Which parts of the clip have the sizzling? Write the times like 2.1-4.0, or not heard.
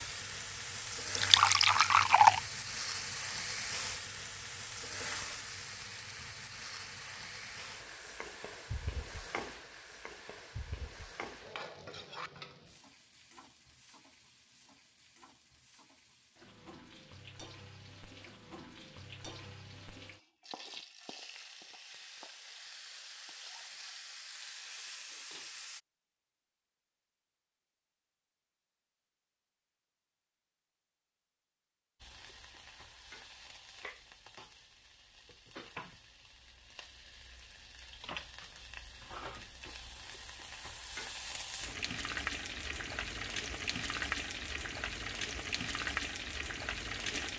0.0-25.8, 32.0-47.3.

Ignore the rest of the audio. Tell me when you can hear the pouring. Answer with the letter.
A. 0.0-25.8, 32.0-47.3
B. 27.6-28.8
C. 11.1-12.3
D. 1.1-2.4
D.